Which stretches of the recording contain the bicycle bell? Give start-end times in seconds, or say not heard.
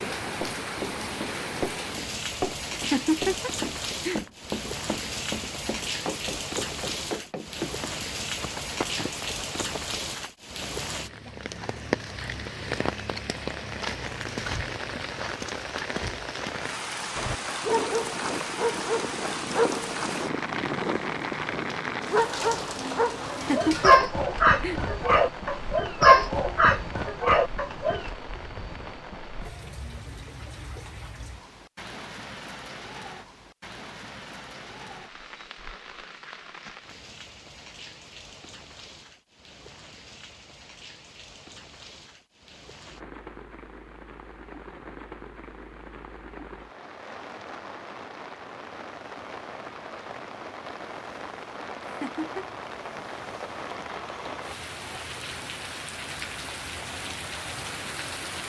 not heard.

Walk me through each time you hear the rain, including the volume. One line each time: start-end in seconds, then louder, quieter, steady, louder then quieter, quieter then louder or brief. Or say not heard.
0.0-58.4 quieter then louder.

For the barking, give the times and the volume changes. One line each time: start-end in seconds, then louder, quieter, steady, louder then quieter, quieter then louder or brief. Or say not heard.
17.1-28.1 louder.